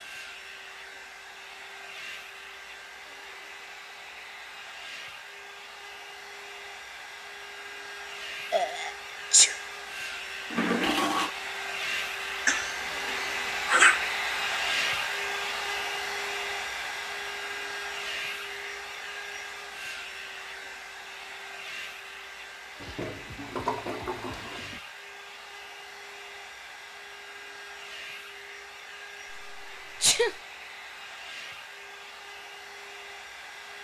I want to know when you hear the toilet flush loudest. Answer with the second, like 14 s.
11 s.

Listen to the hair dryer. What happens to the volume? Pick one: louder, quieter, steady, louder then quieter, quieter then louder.
louder then quieter.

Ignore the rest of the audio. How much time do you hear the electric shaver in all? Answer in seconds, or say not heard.
not heard.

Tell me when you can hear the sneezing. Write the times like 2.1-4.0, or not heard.
8.5-9.6, 12.4-14.1, 29.3-30.4.